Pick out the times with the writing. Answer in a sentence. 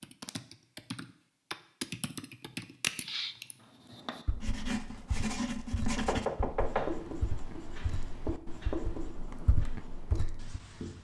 You can hear the writing from 3.6 to 10.9 s.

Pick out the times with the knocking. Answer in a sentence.
You can hear the knocking from 6.0 to 7.0 s.